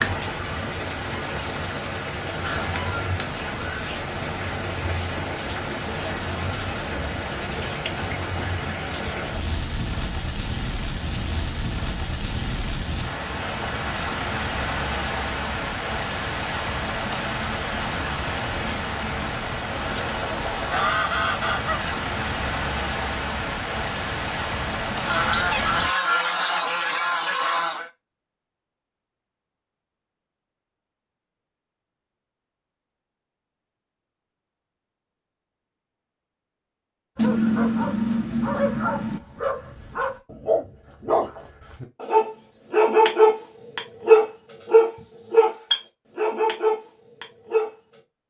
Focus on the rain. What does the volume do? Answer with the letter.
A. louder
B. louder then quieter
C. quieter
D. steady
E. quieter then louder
D.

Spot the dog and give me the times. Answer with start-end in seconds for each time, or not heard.
37.1-47.7.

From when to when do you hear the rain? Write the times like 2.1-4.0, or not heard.
0.0-25.9.